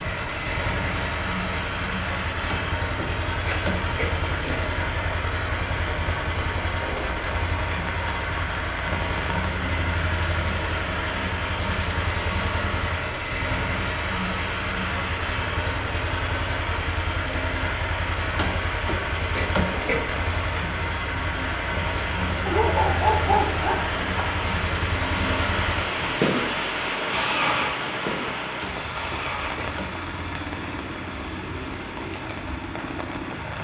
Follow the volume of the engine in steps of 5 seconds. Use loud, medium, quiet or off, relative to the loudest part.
loud, loud, loud, loud, loud, loud, medium.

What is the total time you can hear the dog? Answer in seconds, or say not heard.
2 s.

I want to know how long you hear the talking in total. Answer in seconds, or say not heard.
not heard.